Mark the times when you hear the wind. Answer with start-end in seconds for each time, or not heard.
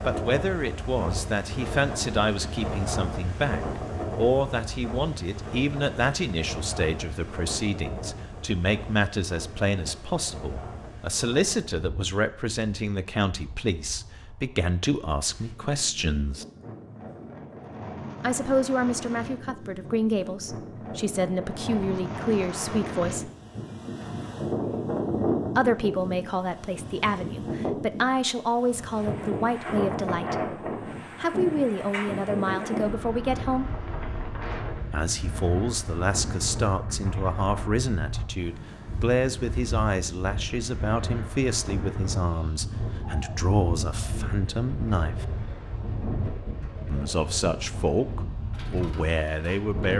0.0-49.9.